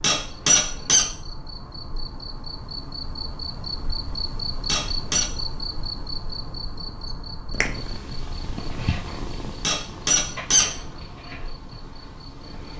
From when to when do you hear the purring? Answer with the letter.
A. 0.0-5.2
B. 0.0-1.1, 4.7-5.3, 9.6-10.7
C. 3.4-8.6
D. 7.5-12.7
D.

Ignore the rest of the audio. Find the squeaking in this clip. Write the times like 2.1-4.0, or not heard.
0.0-1.1, 4.7-5.3, 9.6-10.7.